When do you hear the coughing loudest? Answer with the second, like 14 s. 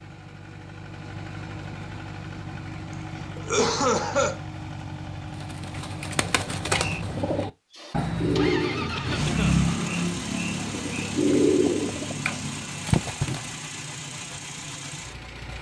4 s.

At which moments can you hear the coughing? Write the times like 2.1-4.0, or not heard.
3.4-4.4, 8.9-9.7.